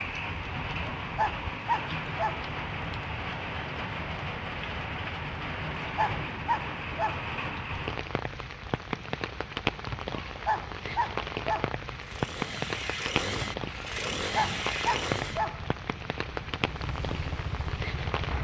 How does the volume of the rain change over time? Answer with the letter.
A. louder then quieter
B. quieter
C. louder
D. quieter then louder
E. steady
E.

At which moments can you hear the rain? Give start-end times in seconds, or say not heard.
0.0-18.3.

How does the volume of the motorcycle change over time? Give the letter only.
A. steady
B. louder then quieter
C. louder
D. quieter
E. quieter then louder
E.